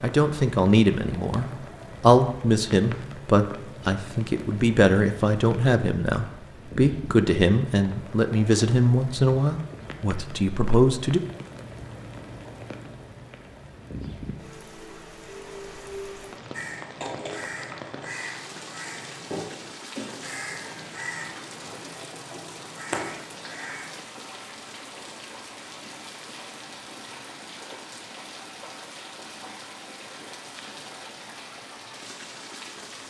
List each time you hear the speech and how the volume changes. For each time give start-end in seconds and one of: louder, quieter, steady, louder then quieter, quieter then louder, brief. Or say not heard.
0.0-11.2 steady.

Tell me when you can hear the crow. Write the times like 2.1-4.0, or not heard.
16.5-24.0.